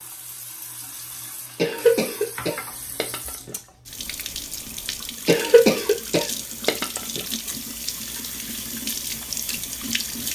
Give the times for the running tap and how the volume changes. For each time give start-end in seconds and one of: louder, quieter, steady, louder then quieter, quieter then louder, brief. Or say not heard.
0.0-10.3 louder.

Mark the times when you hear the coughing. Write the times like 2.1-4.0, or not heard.
1.6-3.5, 5.2-7.2.